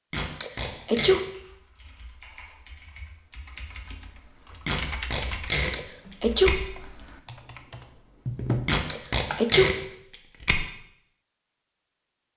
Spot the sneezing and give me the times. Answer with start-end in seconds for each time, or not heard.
0.4-1.2, 5.7-6.5, 8.8-9.7.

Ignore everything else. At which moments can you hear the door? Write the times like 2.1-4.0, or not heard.
not heard.